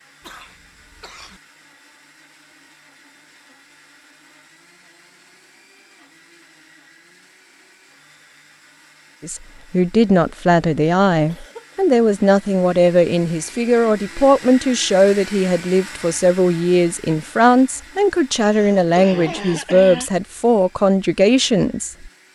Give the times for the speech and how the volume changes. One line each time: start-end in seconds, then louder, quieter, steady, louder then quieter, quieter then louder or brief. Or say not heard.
9.2-22.1 steady.